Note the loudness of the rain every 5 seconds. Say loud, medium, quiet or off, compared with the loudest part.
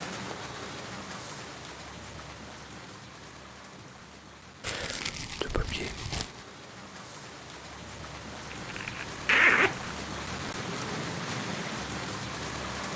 medium, medium, loud.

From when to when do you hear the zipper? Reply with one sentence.
You can hear the zipper from 8.5 to 9.9 s.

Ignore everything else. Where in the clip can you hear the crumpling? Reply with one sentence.
You can hear the crumpling from 4.6 to 6.5 s.